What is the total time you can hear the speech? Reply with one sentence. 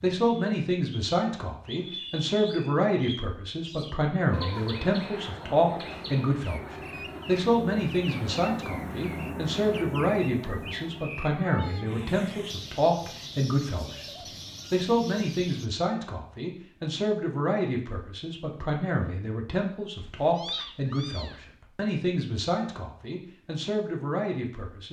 The speech can be heard for 25 seconds in total.